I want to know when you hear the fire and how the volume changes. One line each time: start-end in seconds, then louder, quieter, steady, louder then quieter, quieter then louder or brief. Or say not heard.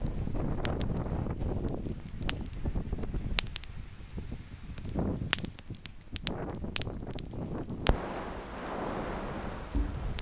0.0-10.1 louder.